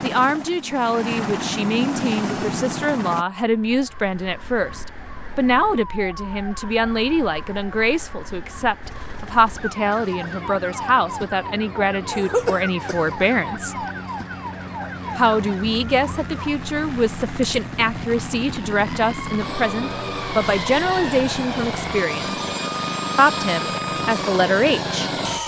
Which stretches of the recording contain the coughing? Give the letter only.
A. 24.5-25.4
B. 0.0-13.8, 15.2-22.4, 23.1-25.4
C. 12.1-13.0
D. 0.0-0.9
C.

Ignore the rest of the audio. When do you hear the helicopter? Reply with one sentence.
The helicopter can be heard from 0.0 to 3.2 s and from 8.8 to 25.4 s.